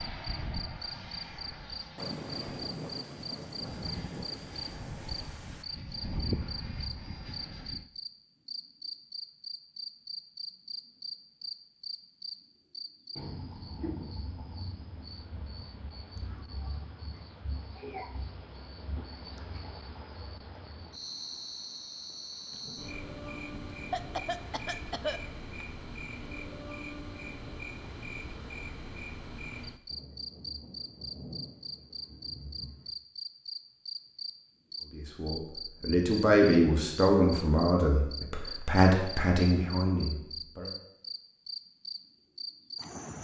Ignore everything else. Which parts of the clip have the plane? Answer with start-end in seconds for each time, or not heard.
0.0-7.8.